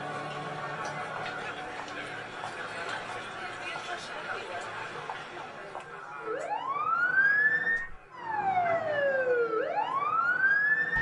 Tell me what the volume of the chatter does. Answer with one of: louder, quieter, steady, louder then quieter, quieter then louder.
quieter.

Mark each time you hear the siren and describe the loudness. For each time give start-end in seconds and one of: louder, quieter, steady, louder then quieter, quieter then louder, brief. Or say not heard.
6.2-10.9 steady.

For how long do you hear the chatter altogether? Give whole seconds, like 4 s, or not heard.
11 s.